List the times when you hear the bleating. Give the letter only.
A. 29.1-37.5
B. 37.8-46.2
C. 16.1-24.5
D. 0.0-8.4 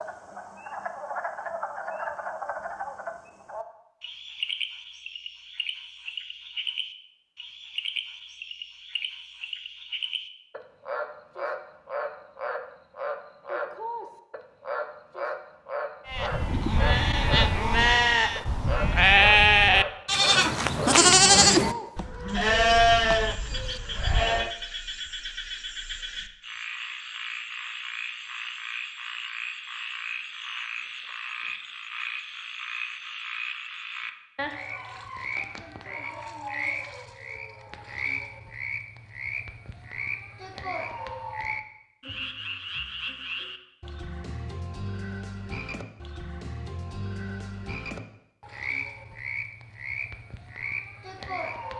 C.